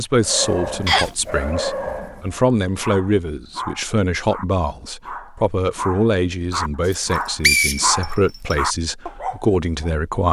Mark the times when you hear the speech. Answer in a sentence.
The speech can be heard from 0.0 to 10.2 s.